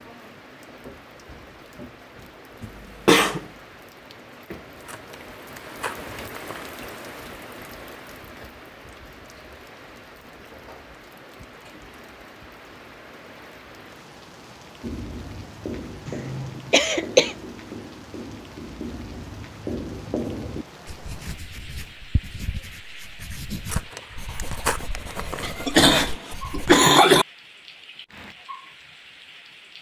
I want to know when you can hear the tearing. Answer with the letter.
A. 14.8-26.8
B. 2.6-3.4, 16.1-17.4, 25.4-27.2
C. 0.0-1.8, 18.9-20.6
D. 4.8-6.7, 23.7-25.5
D.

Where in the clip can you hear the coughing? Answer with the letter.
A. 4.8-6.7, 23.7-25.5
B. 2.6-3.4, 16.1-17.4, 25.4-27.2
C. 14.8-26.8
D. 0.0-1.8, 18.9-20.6
B.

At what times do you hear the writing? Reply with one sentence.
The writing can be heard from 14.8 to 26.8 s.